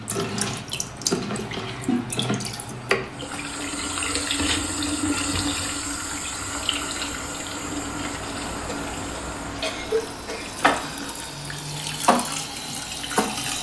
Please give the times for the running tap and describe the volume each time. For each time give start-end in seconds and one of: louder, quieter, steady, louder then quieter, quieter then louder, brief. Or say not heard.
0.0-13.5 quieter then louder.